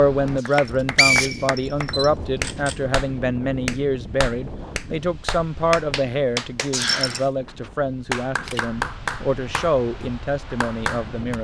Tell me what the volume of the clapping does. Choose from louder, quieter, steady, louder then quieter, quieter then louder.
steady.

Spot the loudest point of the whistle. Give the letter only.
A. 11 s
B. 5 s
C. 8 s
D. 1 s
D.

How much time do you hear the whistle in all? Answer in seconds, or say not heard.
2 s.